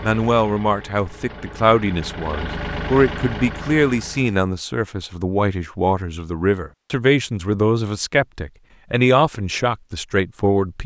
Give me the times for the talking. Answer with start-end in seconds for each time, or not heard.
0.0-10.8.